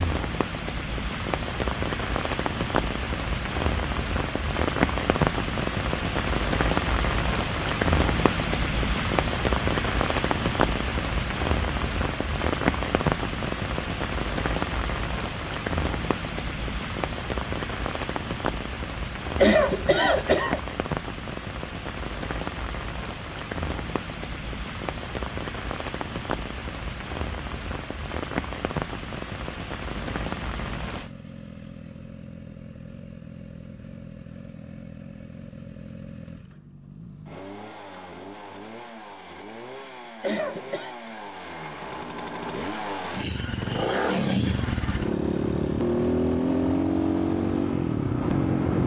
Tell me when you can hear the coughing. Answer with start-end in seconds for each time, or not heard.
19.4-20.6, 40.2-41.0.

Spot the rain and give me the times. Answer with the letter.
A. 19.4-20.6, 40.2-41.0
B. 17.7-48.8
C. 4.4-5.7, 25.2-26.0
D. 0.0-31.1
D.